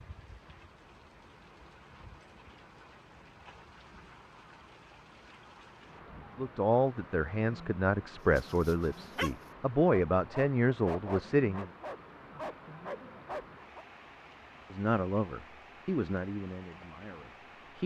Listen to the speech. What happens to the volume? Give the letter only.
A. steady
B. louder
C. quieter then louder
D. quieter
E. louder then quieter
D.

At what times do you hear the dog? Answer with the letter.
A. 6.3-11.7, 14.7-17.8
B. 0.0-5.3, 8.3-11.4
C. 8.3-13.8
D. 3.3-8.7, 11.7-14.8
C.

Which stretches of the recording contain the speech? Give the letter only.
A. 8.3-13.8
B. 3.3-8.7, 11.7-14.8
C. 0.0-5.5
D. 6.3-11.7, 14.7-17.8
D.